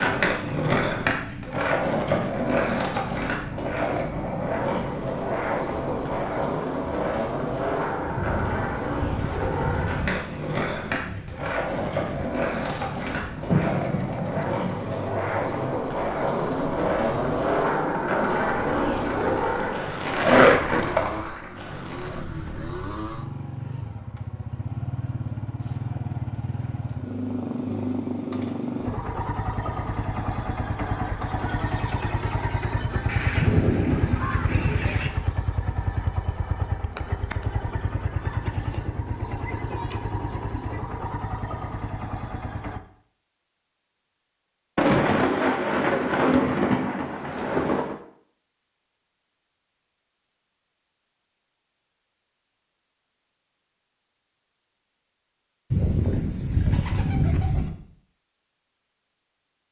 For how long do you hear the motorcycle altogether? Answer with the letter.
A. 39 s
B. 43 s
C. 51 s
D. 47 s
B.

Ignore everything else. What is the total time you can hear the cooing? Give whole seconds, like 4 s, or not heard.
4 s.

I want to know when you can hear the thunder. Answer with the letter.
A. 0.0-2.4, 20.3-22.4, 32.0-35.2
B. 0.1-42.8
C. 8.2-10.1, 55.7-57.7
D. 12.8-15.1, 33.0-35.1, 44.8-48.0
D.